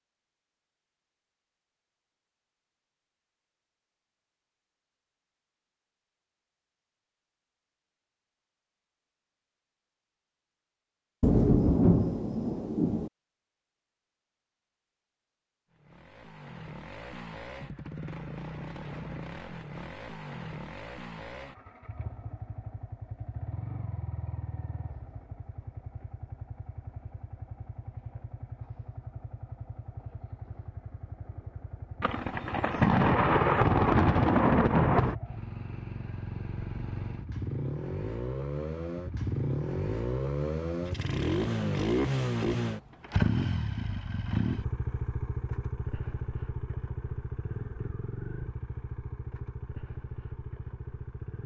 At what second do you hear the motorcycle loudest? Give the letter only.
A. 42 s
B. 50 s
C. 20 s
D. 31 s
A.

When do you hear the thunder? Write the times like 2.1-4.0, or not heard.
11.2-13.1, 32.0-35.1.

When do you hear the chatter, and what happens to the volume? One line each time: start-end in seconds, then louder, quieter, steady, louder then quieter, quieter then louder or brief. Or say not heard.
not heard.